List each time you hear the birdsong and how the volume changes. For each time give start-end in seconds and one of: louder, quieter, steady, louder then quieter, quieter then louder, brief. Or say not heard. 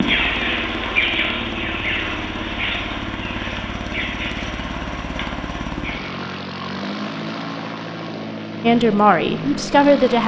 0.0-6.2 quieter.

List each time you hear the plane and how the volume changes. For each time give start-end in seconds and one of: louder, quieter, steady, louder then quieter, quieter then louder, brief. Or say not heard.
0.0-10.2 steady.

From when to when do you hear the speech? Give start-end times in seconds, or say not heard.
8.6-10.2.